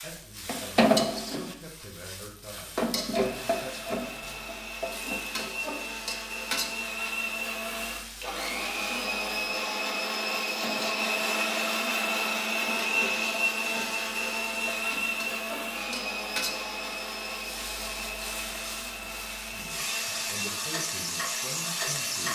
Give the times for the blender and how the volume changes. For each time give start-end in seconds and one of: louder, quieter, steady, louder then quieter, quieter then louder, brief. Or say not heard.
3.2-22.2 louder then quieter.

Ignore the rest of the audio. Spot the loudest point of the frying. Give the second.
1 s.